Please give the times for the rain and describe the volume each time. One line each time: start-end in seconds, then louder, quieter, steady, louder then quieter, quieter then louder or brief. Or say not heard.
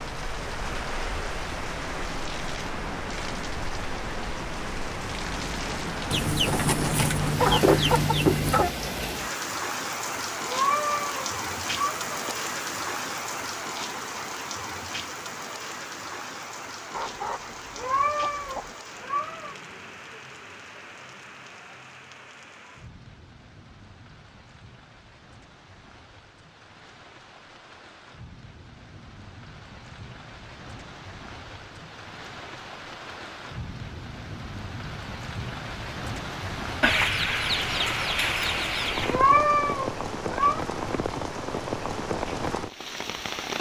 0.0-43.5 quieter then louder.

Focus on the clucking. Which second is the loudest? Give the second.
8 s.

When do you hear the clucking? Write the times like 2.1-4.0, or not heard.
6.1-8.7, 16.9-18.8, 36.8-39.2.